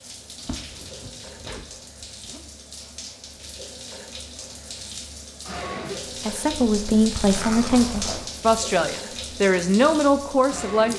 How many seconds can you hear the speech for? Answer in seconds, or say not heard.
5 s.